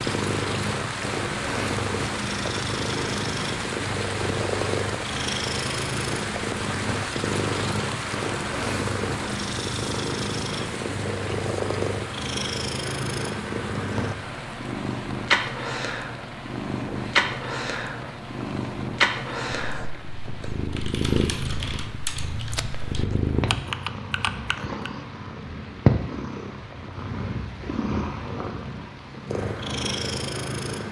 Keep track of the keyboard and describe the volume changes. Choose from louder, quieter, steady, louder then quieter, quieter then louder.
louder.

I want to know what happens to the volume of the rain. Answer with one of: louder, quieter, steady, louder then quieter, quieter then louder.
quieter.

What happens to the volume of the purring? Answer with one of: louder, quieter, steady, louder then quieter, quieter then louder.
steady.